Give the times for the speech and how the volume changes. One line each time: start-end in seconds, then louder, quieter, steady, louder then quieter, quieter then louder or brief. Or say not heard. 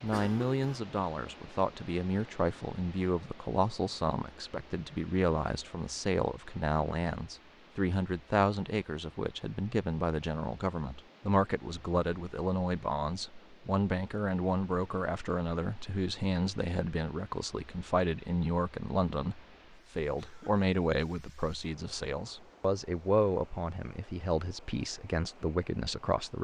0.0-26.3 steady.